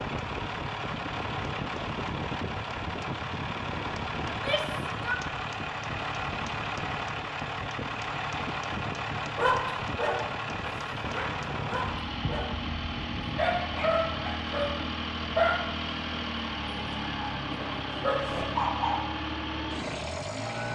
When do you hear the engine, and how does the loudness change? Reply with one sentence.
You can hear the engine from 0.0 to 20.6 s, at a steady volume.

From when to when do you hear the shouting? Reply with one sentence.
You can hear the shouting from 4.2 to 5.2 s.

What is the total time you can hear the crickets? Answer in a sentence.
You can't hear the crickets here.